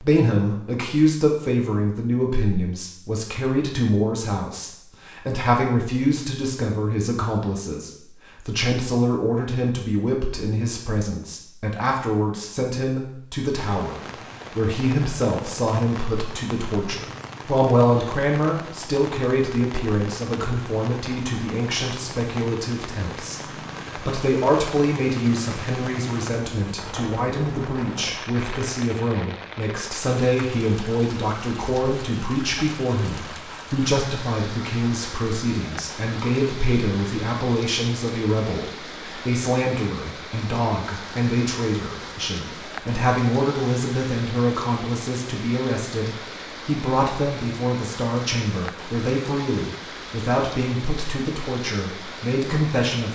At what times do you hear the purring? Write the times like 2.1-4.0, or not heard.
not heard.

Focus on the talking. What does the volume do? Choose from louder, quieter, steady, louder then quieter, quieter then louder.
steady.